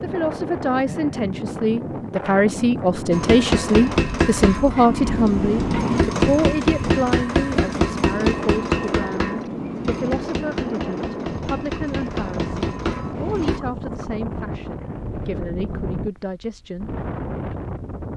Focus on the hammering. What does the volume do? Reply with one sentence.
The volume of the hammering goes down.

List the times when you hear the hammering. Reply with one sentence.
You can hear the hammering from 3.1 to 13.6 s.